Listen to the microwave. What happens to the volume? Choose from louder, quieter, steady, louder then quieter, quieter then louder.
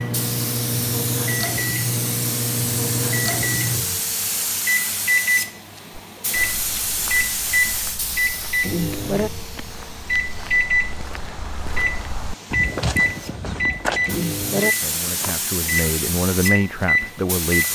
steady.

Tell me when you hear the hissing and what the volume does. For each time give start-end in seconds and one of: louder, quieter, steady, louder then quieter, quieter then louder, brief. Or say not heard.
0.1-17.6 quieter then louder.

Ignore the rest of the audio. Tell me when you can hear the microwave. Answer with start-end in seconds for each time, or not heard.
0.0-17.6.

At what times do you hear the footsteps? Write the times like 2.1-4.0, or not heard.
5.9-15.3.